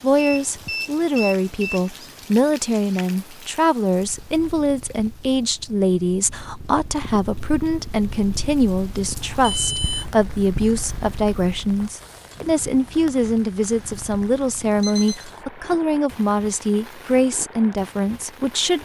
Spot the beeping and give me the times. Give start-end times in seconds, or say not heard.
0.1-1.9, 9.4-10.1, 14.6-15.2.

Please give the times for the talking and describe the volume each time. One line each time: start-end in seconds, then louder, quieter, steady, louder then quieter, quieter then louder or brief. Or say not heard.
0.0-18.8 steady.